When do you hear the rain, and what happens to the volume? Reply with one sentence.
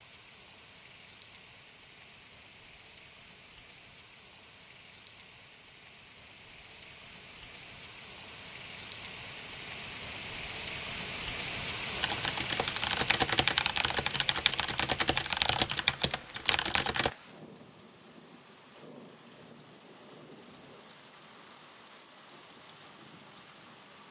The rain can be heard from 0.0 to 24.0 s, getting louder then quieter.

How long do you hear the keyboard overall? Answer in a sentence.
You can hear the keyboard for 5 seconds altogether.